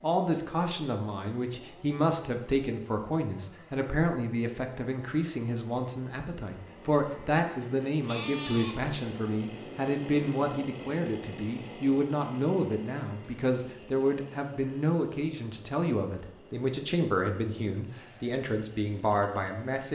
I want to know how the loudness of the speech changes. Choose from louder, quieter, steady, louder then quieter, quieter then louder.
steady.